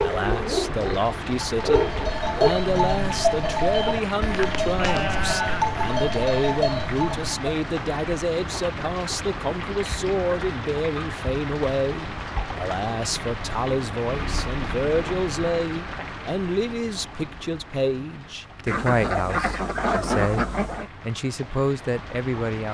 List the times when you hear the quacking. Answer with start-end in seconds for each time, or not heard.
18.6-20.9.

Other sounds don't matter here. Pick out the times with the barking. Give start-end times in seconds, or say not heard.
0.0-2.5.